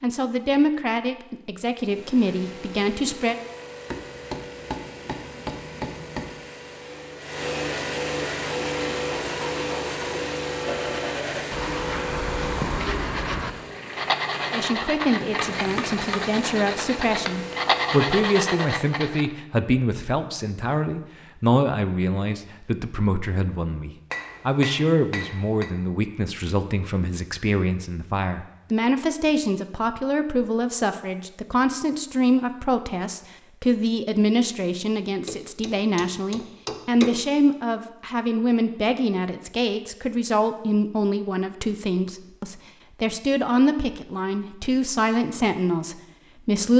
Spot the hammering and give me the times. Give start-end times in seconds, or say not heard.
3.9-6.5, 15.0-16.4, 24.1-25.7, 35.2-37.2.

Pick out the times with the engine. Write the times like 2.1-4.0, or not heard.
1.7-18.9.